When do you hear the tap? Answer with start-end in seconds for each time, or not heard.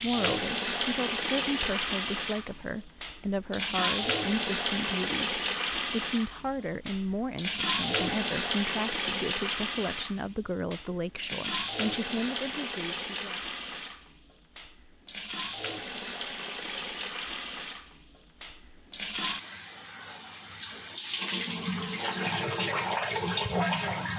0.0-24.1.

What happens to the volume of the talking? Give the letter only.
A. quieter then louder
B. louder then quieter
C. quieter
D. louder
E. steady
E.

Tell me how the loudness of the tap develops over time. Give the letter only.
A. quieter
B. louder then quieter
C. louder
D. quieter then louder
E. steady
D.